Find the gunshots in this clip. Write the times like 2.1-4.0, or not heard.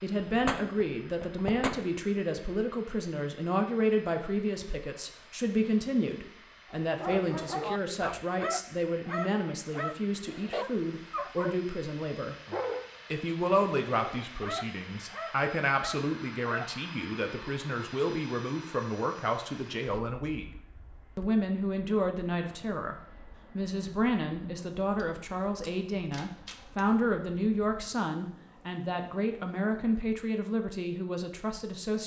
0.2-1.9, 24.9-26.9.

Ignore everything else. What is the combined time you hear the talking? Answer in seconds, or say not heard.
30 s.